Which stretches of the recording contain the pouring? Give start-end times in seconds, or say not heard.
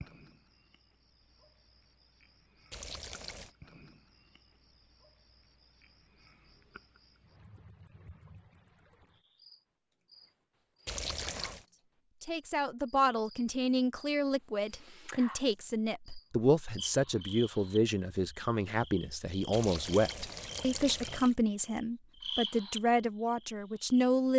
2.7-3.5, 10.8-11.7, 19.5-21.4.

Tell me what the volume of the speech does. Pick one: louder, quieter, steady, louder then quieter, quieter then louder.
steady.